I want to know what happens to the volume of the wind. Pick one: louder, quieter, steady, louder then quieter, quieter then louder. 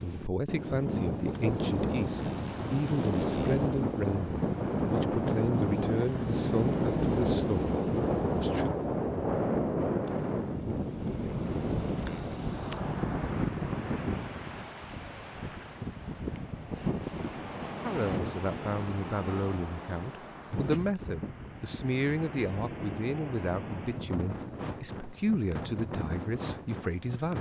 quieter.